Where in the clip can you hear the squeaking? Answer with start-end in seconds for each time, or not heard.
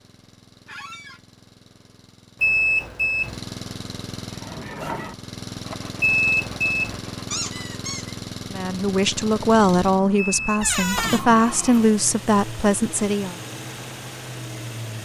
0.7-1.2, 7.3-8.2, 10.6-11.2.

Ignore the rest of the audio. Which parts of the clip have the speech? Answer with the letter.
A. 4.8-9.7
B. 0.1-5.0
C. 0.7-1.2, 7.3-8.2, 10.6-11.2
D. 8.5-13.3
D.